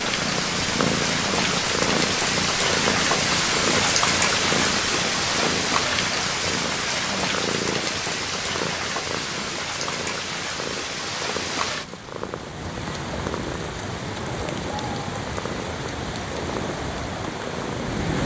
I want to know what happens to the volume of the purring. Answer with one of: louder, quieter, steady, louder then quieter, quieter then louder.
quieter.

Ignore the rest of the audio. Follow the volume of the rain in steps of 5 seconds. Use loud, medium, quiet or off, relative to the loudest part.
loud, loud, medium, medium.